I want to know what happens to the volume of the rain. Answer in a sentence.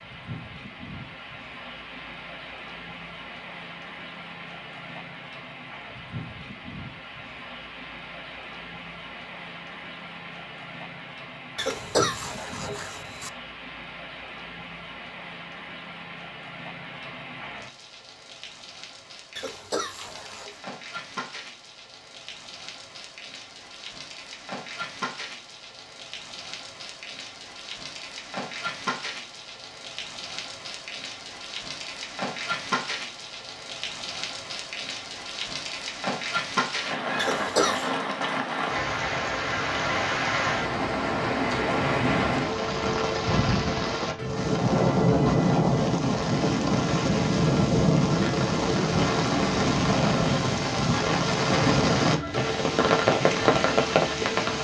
The volume of the rain goes up.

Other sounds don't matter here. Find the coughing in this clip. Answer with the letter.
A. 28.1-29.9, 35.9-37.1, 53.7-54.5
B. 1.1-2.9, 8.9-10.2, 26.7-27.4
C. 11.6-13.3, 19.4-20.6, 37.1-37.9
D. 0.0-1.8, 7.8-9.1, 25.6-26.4
C.